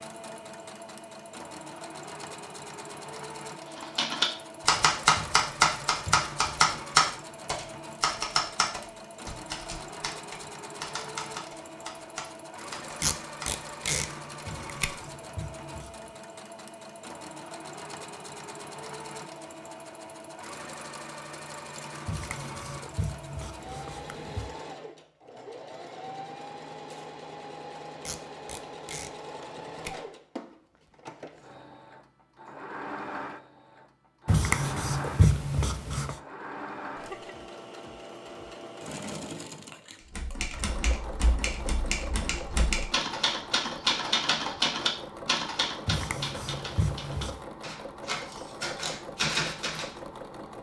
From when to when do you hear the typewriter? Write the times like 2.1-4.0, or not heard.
3.8-13.6, 40.1-49.9.